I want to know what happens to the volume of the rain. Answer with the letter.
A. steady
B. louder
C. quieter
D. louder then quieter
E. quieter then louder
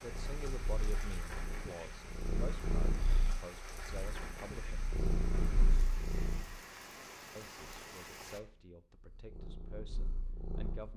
A.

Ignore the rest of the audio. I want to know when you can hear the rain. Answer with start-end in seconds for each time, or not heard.
0.0-8.4.